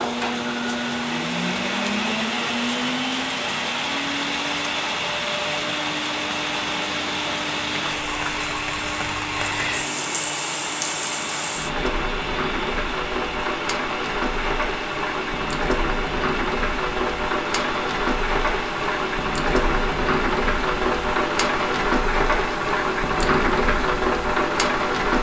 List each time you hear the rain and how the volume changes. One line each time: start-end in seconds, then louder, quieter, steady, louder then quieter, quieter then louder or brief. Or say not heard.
0.0-25.1 louder.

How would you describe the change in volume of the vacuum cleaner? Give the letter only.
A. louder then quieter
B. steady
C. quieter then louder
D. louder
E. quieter
E.